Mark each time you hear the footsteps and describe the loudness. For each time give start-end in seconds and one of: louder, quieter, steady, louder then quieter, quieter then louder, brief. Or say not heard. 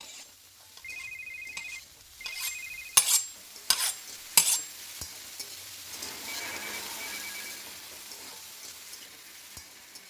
not heard.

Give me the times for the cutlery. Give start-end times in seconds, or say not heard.
0.0-4.7.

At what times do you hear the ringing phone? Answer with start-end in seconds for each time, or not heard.
0.8-3.0, 6.2-7.4.